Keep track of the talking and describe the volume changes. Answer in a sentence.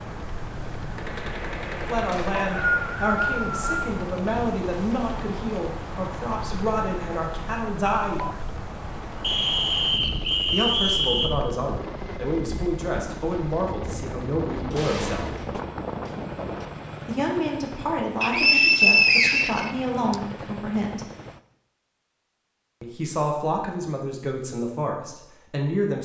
The volume of the talking stays about the same.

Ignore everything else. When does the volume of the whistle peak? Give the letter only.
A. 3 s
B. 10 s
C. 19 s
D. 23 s
C.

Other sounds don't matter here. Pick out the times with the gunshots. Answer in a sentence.
The gunshots can be heard from 0.9 to 3.0 s and from 14.7 to 16.6 s.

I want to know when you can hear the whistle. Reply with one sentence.
The whistle can be heard from 2.1 to 3.8 s, from 9.2 to 11.3 s and from 18.2 to 20.1 s.